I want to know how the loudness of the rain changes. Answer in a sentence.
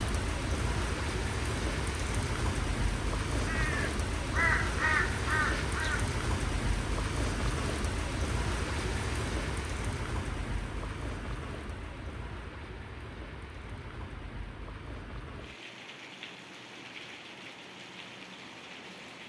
The loudness of the rain goes down.